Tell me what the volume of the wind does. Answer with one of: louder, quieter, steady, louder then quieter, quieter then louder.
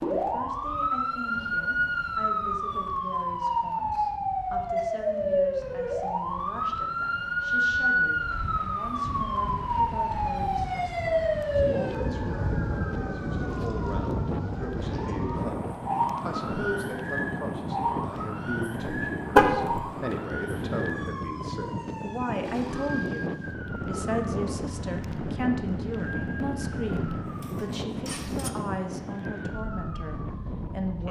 louder.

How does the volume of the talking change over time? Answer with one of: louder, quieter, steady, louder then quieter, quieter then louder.
louder.